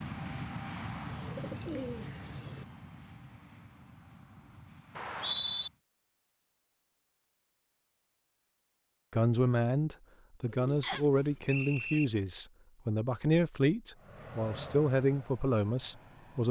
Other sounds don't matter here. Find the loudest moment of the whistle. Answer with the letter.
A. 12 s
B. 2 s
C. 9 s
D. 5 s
D.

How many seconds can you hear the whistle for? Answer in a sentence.
You can hear the whistle for 2 seconds altogether.